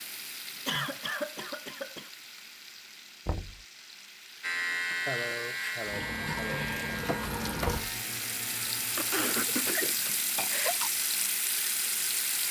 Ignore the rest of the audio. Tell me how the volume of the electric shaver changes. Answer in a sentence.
The loudness of the electric shaver goes down.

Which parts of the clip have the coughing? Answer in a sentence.
The coughing can be heard from 0.7 to 2.1 s, from 5.0 to 6.7 s and from 8.9 to 10.9 s.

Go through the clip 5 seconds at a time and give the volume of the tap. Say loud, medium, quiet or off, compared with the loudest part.
quiet, loud, loud.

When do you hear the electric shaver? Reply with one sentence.
You can hear the electric shaver from 4.4 to 9.7 s.